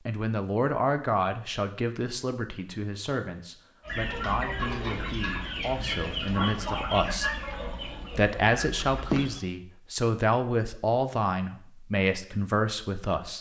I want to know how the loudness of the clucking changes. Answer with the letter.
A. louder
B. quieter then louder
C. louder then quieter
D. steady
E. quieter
E.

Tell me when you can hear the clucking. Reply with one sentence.
You can hear the clucking from 3.8 to 9.4 s.